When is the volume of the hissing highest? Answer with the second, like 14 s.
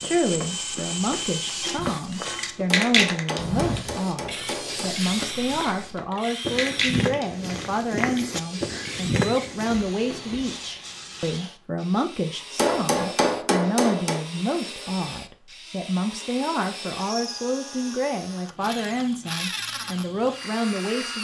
3 s.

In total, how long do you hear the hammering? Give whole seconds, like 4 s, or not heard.
4 s.